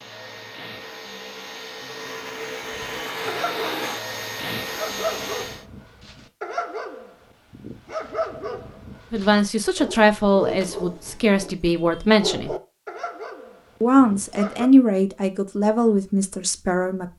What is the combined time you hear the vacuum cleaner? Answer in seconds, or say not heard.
6 s.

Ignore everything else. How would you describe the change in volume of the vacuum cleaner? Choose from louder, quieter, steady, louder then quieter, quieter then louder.
louder.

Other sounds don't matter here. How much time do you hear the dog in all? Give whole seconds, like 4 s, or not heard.
12 s.